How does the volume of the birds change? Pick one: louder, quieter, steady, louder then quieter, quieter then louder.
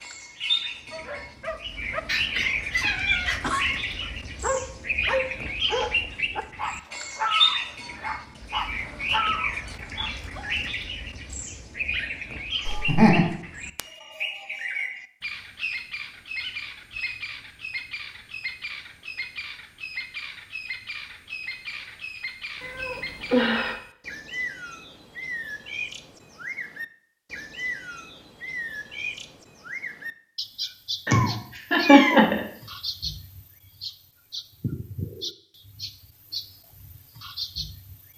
quieter.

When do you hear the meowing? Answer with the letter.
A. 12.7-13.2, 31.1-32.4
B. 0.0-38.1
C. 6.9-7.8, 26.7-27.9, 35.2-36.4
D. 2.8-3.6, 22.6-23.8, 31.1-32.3
D.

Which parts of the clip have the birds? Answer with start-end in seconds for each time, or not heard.
0.0-38.1.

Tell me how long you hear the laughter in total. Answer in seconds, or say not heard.
2 s.